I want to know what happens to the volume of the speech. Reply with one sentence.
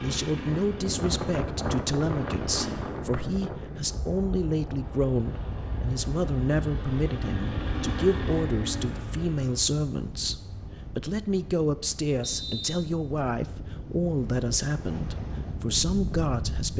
The loudness of the speech stays about the same.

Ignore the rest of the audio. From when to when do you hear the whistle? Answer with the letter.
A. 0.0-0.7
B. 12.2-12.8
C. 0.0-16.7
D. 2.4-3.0
B.